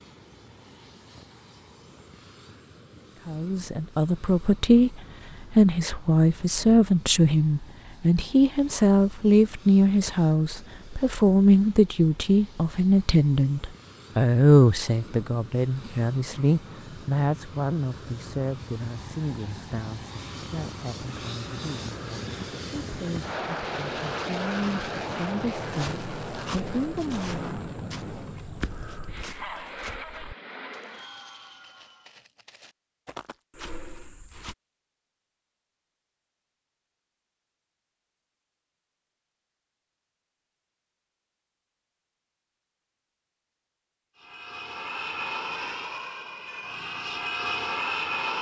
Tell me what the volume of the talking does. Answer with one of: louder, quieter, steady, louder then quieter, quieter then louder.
quieter.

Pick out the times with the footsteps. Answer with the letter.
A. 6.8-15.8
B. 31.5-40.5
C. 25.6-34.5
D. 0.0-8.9
C.